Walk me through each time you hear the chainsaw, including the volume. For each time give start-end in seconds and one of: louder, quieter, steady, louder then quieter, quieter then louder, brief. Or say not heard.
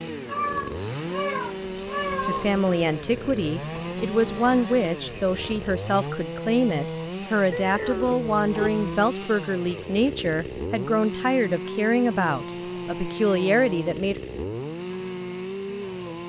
0.0-16.2 steady.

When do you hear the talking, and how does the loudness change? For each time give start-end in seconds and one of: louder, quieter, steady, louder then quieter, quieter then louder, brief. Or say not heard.
2.2-14.2 steady.